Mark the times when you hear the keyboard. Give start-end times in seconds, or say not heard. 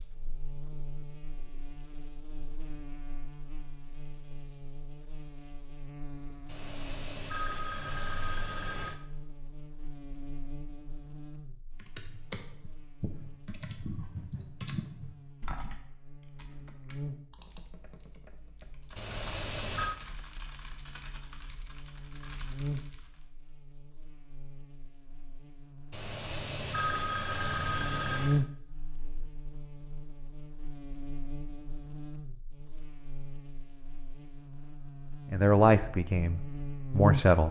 11.8-23.2.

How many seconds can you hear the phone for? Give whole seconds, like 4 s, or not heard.
6 s.